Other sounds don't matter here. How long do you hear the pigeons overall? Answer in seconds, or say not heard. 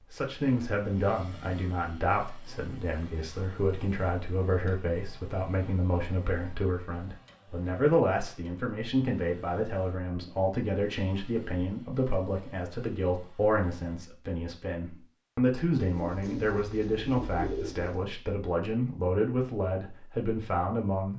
2 s.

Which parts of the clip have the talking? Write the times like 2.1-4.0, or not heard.
0.1-21.1.